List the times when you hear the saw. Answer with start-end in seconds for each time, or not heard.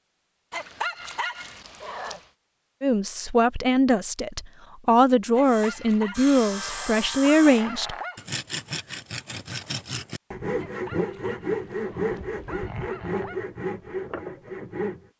5.5-15.1.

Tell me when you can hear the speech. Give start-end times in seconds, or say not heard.
2.8-8.0.